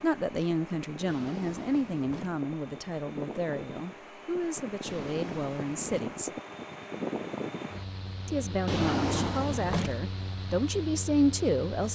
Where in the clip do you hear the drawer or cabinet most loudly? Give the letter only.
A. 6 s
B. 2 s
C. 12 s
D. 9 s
D.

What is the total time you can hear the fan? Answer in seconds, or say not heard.
12 s.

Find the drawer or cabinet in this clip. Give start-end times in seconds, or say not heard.
1.1-2.4, 4.8-6.1, 8.7-10.0.